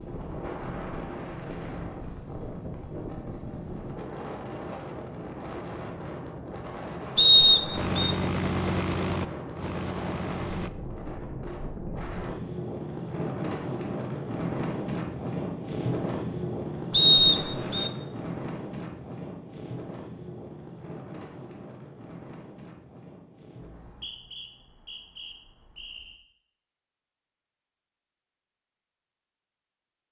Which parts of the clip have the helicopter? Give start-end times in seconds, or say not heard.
7.7-10.7.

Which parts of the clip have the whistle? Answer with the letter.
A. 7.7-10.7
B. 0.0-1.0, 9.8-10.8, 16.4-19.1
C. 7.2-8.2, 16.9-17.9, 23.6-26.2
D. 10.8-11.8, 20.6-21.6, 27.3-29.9
C.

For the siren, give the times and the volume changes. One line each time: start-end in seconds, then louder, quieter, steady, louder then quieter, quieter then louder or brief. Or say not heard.
not heard.